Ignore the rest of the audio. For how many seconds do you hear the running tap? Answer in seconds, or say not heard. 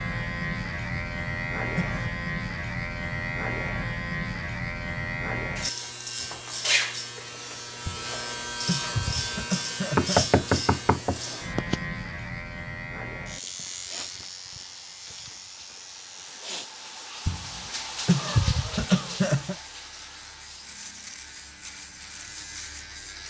9 s.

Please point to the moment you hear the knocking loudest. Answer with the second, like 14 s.
10 s.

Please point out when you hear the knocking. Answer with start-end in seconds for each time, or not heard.
9.9-11.8.